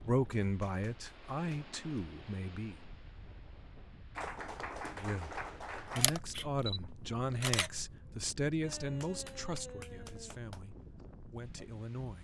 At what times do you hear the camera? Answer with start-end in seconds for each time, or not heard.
6.0-7.9.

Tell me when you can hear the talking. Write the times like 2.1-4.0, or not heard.
0.0-2.8, 4.9-12.1.